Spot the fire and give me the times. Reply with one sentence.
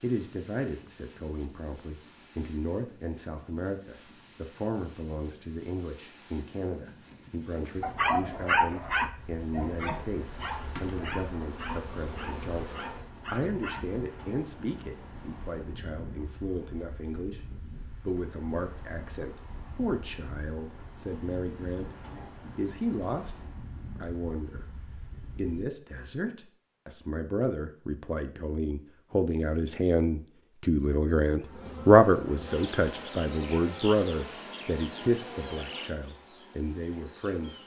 You can't hear the fire here.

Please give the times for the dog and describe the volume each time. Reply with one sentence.
You can hear the dog from 7.8 to 13.8 s, getting quieter.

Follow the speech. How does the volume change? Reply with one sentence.
The loudness of the speech goes up.